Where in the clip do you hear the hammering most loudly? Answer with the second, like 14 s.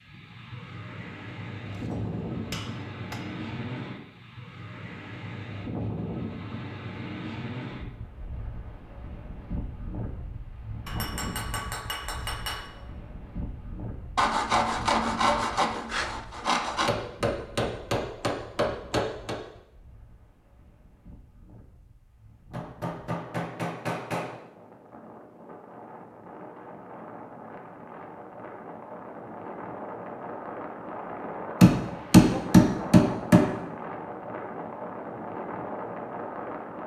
32 s.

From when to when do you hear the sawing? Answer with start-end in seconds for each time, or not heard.
14.2-16.9.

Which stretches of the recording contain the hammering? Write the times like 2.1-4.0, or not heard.
1.7-3.2, 10.8-12.7, 16.9-19.4, 22.5-24.4, 31.6-33.5.